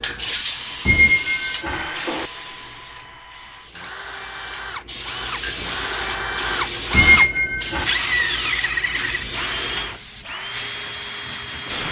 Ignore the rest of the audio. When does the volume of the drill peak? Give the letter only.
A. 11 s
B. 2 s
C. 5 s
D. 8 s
D.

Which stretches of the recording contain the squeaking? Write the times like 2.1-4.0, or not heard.
0.8-2.2, 6.9-7.9.